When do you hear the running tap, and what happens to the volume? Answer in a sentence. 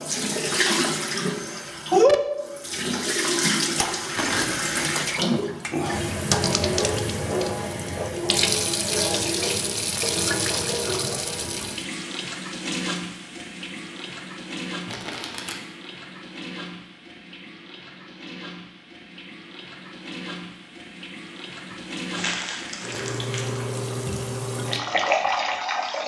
The running tap can be heard from 0.0 to 26.0 s, getting quieter then louder.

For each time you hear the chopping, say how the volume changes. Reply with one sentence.
The chopping can't be heard in this clip.